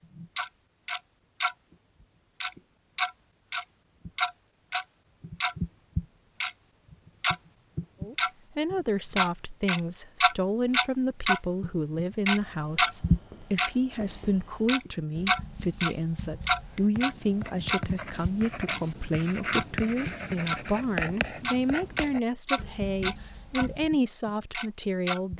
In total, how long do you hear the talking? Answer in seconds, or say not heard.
17 s.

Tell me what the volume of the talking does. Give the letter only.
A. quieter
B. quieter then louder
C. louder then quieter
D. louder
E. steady
E.